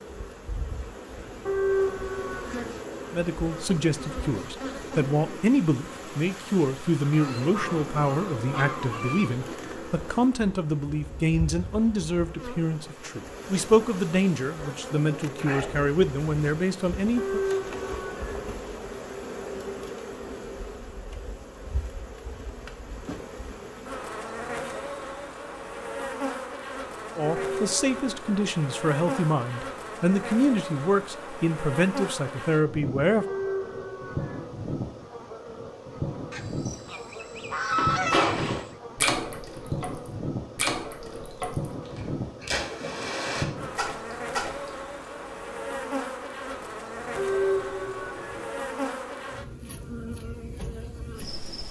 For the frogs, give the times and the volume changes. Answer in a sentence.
You can't hear the frogs here.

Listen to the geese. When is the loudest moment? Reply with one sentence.
The volume of the geese peaks at 38 seconds.